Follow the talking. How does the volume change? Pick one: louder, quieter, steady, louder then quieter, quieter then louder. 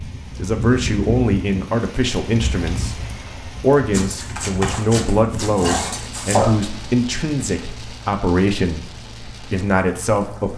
steady.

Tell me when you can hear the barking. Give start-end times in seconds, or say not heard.
3.9-6.5.